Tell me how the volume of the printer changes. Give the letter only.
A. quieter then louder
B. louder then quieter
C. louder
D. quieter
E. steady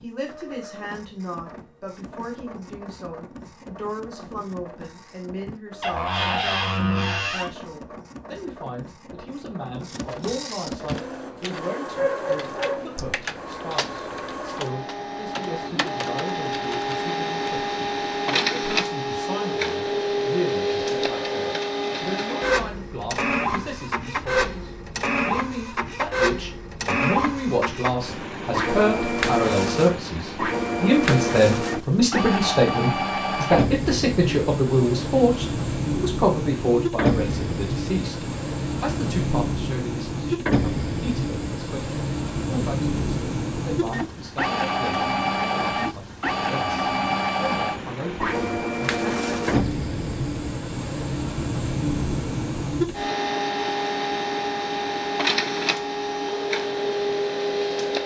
C.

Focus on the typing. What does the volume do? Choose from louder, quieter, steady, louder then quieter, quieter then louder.
quieter.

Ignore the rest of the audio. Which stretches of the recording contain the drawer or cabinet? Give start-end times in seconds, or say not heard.
5.8-7.5.